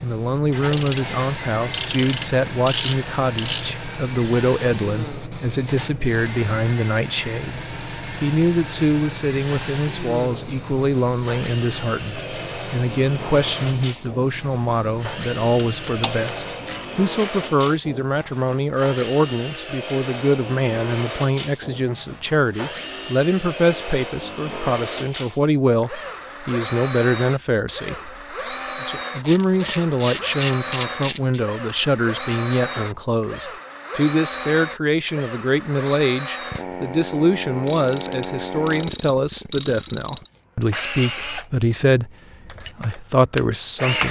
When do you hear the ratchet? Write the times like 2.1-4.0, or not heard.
0.7-3.6, 15.8-17.4, 29.2-31.4, 37.6-40.3.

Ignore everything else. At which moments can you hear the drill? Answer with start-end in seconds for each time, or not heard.
0.0-44.0.